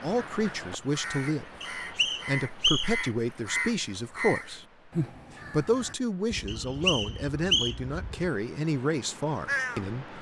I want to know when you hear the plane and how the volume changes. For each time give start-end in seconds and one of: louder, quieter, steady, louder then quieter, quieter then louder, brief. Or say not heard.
not heard.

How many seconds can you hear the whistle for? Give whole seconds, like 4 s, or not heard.
3 s.